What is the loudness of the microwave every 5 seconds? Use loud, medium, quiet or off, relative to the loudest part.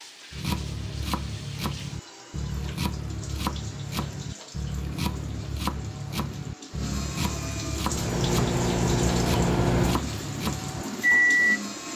off, loud, loud.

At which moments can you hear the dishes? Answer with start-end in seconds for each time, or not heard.
not heard.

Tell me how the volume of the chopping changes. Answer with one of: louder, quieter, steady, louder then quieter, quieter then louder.
steady.